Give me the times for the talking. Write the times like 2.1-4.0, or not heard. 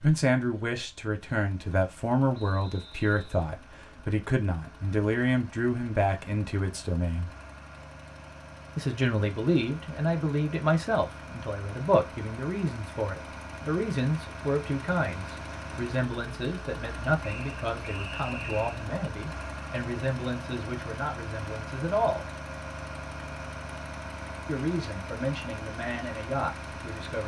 0.0-7.3, 8.8-22.2, 24.4-27.2.